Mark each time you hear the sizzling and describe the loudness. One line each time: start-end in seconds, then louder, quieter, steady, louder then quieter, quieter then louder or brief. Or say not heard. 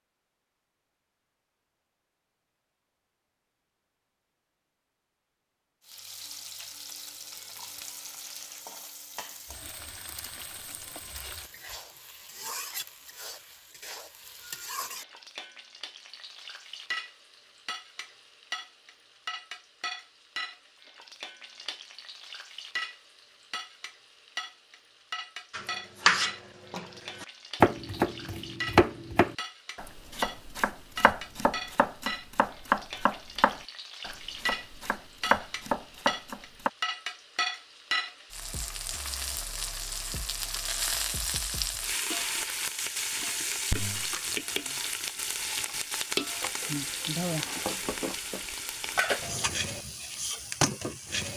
5.8-51.3 louder.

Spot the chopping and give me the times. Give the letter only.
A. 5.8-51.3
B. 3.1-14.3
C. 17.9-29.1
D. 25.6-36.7
D.